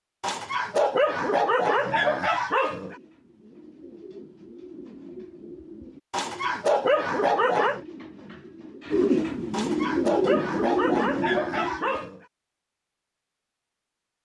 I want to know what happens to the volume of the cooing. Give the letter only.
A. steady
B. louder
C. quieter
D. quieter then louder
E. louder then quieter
B.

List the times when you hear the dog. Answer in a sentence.
You can hear the dog from 0.2 to 3.0 s, from 6.1 to 7.8 s and from 9.5 to 12.2 s.